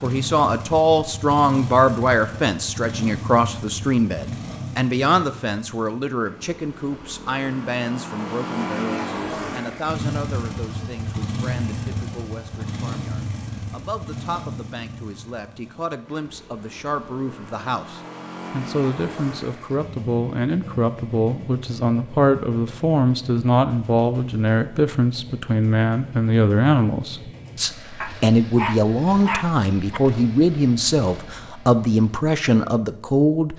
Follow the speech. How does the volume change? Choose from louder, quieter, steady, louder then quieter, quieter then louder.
quieter then louder.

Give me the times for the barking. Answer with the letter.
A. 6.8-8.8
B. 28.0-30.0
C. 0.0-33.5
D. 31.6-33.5
B.